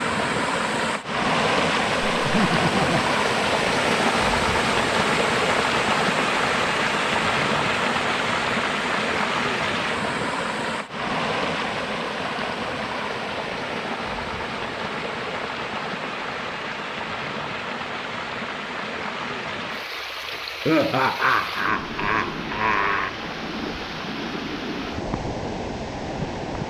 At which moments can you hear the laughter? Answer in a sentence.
You can hear the laughter from 2.2 to 3.1 s and from 20.6 to 23.1 s.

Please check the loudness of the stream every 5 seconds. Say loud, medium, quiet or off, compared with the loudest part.
loud, loud, medium, medium, medium, medium.